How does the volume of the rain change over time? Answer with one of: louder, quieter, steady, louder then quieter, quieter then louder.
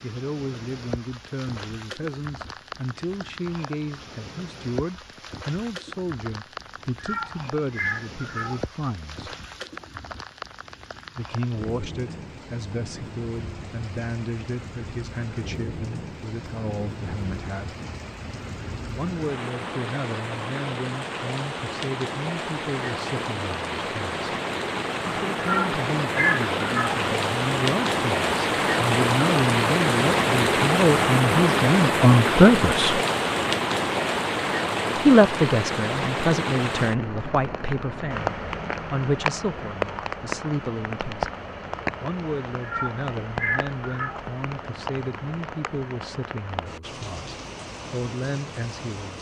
louder then quieter.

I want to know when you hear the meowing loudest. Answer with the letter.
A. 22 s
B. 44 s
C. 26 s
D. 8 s
C.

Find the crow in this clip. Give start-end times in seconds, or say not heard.
not heard.